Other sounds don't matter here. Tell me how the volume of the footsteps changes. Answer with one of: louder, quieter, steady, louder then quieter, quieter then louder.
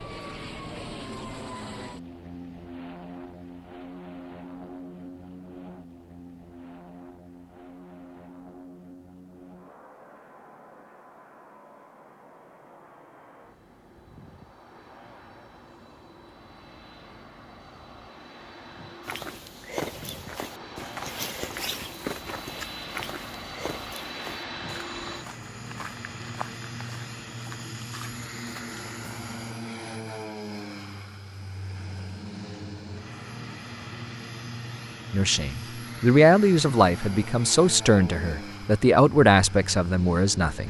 quieter.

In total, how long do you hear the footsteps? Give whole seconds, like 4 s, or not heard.
10 s.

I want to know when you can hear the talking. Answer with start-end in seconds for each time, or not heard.
35.1-40.6.